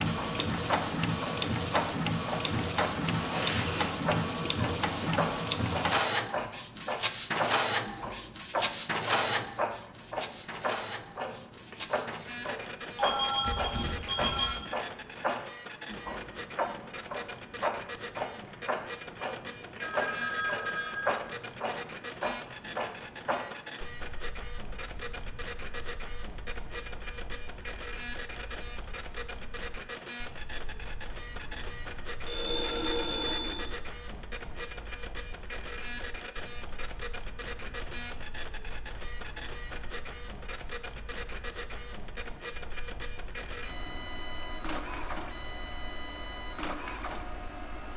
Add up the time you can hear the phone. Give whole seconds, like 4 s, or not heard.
4 s.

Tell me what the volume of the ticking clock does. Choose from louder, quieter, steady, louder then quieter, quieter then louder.
quieter.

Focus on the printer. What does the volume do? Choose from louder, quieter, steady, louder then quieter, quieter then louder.
quieter.